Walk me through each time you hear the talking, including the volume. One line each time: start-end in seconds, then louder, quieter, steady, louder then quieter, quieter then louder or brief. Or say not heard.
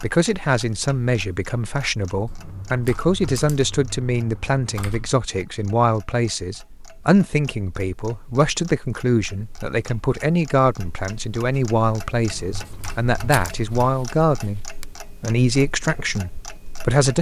0.0-17.1 steady.